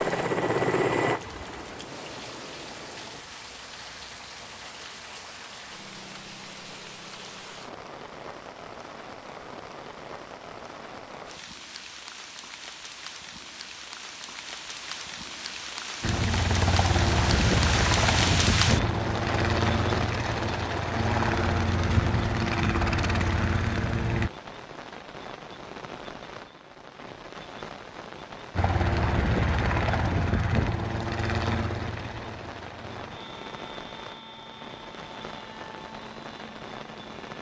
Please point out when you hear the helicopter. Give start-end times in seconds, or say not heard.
0.0-3.2, 16.0-24.3, 28.6-37.3.